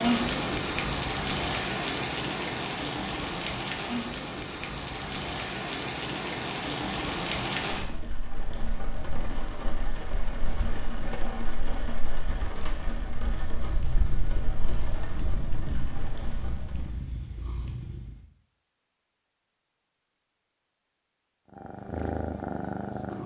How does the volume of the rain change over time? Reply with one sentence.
The volume of the rain goes down.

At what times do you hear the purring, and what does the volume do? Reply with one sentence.
You can hear the purring from 13.2 to 18.3 s, at a steady volume; and briefly from 21.5 to 23.2 s.